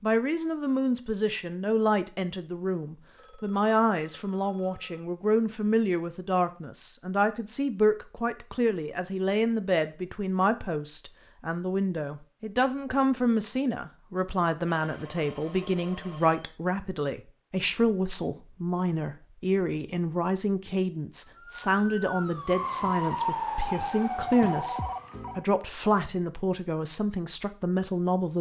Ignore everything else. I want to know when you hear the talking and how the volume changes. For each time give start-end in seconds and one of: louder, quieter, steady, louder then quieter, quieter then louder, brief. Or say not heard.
0.0-28.3 steady.